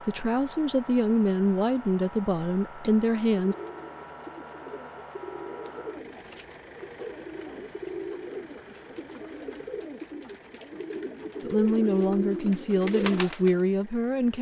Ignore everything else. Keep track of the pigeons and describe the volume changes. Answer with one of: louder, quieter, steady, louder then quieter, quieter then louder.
louder.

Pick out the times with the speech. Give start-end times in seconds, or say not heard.
0.0-3.5, 11.4-14.3.